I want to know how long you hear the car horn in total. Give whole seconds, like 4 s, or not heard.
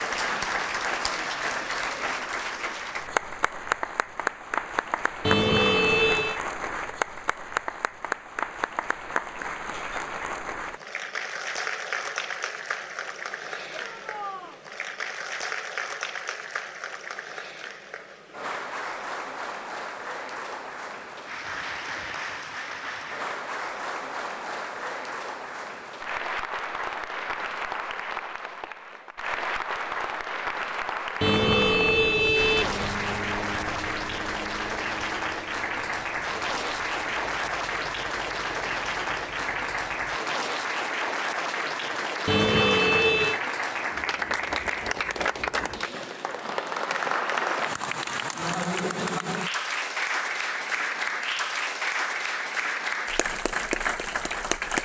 4 s.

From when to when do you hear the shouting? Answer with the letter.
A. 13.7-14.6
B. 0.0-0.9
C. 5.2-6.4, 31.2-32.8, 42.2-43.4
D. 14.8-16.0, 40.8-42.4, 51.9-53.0
A.